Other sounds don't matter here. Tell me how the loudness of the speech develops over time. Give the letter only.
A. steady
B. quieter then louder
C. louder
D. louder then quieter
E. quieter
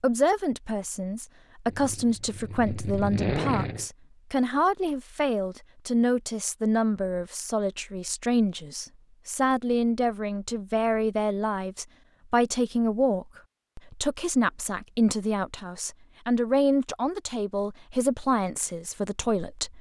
A.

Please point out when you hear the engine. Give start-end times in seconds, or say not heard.
1.6-3.9.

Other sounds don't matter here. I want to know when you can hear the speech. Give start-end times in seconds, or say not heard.
0.0-19.7.